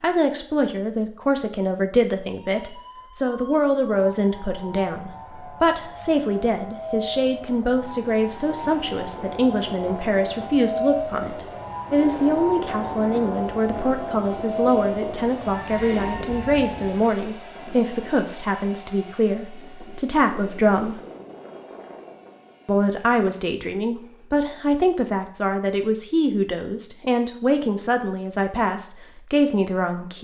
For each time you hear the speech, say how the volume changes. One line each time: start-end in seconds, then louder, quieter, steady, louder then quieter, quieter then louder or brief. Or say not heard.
0.0-21.0 steady
22.6-30.2 steady.